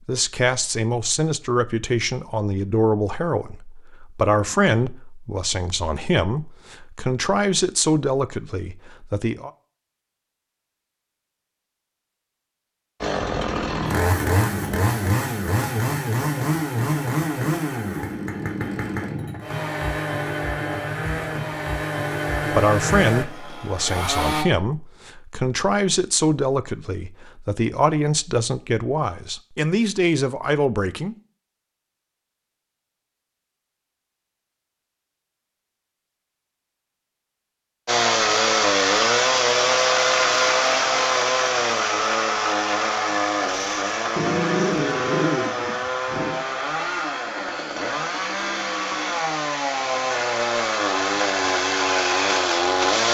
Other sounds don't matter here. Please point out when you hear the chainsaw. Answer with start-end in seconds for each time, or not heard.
13.0-24.4, 37.9-53.0.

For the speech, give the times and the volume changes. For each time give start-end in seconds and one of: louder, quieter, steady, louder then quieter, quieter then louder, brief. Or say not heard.
0.1-9.5 steady
22.5-31.1 steady.